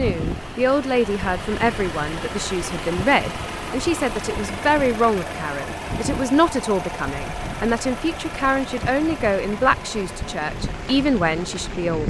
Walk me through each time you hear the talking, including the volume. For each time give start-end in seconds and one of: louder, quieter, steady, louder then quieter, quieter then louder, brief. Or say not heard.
0.0-12.0 steady.